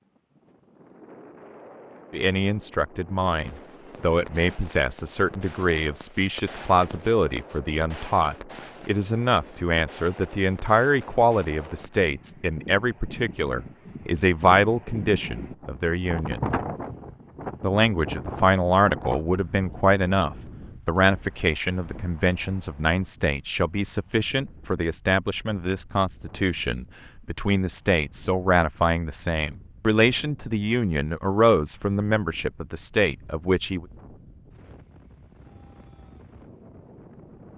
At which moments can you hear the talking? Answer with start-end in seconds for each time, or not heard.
2.1-16.4, 17.6-33.9.